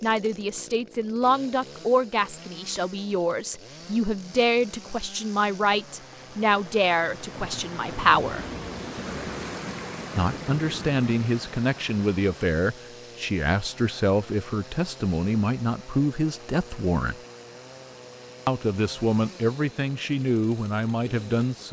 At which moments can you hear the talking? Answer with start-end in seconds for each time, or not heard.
0.0-8.4, 10.2-17.1, 18.4-21.6.